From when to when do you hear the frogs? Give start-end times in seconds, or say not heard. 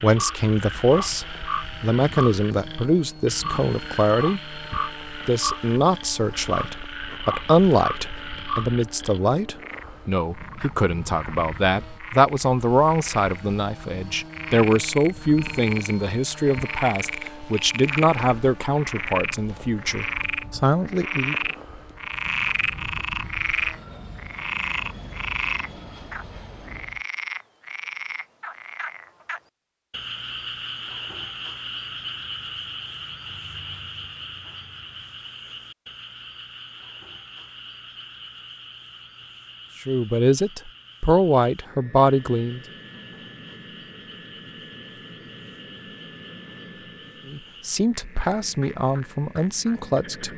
0.0-50.3.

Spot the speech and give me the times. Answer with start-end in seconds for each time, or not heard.
0.0-21.4, 39.9-42.6, 47.2-50.3.